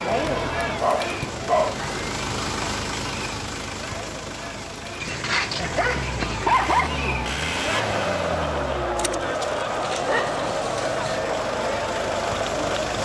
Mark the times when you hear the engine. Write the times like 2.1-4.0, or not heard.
0.0-13.0.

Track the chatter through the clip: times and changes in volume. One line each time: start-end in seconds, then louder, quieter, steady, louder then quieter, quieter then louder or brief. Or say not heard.
0.0-13.0 quieter then louder.